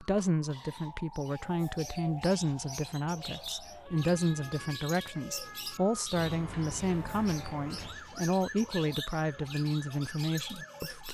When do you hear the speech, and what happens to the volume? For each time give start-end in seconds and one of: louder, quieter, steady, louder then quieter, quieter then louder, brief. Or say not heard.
0.0-11.1 steady.